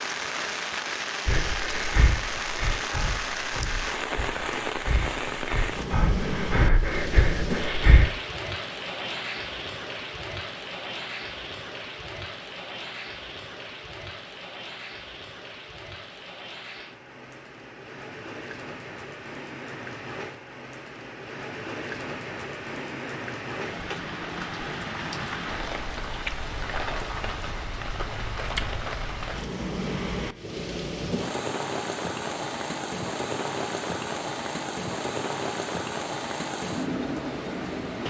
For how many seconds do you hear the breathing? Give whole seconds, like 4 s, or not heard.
7 s.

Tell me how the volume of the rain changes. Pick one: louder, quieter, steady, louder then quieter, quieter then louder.
quieter then louder.